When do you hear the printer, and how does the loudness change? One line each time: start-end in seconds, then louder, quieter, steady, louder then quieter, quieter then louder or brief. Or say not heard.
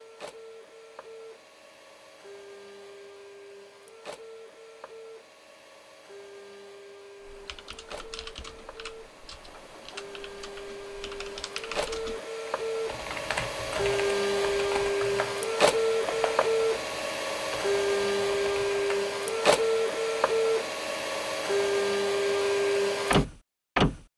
0.0-24.0 louder.